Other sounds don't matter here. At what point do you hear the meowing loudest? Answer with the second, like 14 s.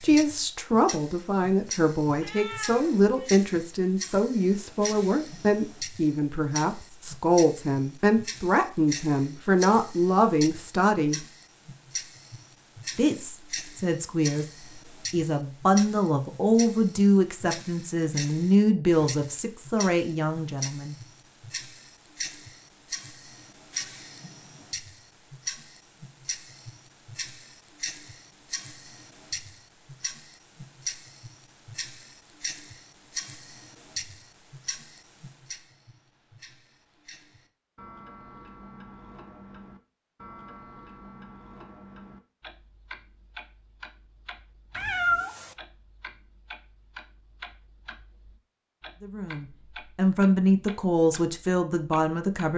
45 s.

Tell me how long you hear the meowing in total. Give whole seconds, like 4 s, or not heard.
2 s.